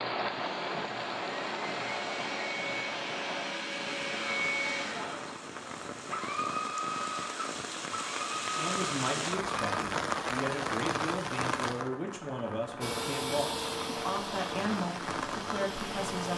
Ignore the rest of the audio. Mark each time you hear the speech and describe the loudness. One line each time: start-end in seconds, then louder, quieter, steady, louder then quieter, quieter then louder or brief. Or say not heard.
8.6-16.3 steady.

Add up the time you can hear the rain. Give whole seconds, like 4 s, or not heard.
16 s.